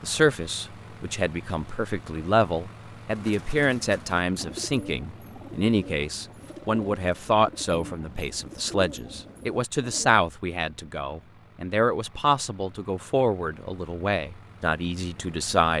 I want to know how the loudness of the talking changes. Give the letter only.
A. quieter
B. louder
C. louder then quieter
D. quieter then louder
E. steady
E.